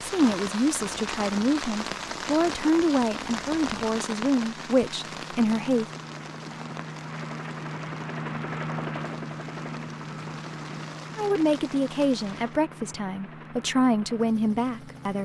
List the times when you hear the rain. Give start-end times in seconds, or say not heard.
0.0-12.6.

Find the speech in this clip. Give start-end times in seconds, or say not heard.
0.0-5.8, 11.2-15.2.